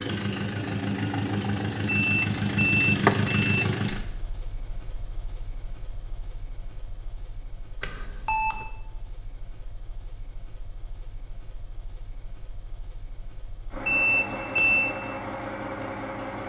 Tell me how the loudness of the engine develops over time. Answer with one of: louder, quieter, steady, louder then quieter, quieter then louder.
quieter then louder.